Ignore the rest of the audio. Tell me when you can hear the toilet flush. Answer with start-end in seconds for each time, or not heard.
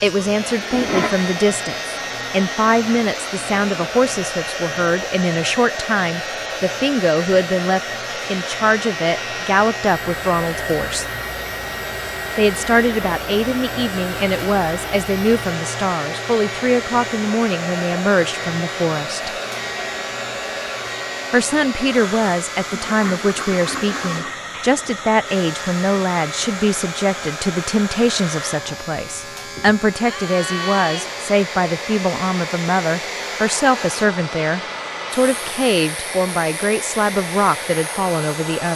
0.7-1.4, 22.6-24.4.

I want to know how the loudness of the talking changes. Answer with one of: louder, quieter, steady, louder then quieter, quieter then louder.
steady.